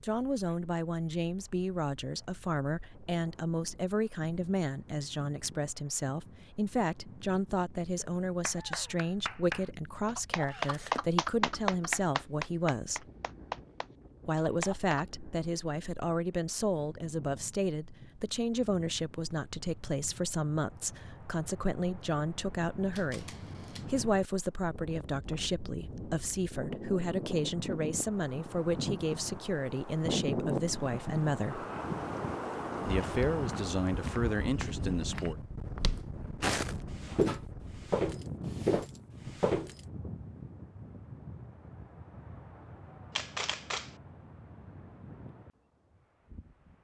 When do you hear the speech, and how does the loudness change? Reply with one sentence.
The speech can be heard from 0.0 to 13.1 s, at a steady volume; from 14.2 to 31.6 s, at a steady volume; and briefly from 32.9 to 35.4 s.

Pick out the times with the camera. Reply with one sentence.
You can hear the camera from 10.4 to 11.2 s, from 22.9 to 23.9 s and from 43.1 to 44.0 s.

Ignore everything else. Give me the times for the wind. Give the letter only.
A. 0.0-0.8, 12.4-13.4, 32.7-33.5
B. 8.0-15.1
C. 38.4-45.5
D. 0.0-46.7
D.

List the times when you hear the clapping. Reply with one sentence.
The clapping can be heard from 8.0 to 15.1 s.